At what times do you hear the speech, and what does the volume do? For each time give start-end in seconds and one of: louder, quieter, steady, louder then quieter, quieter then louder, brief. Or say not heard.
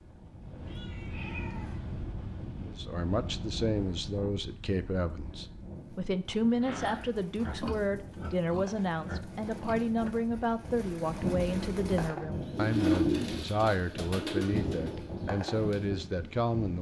2.6-16.7 steady.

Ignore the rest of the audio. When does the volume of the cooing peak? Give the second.
13 s.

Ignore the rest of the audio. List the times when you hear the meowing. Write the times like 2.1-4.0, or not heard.
0.7-1.8.